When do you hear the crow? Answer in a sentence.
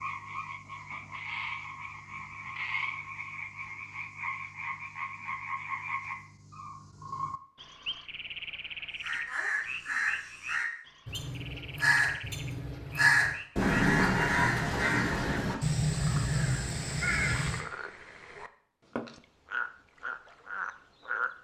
You can hear the crow from 9.0 to 17.6 s.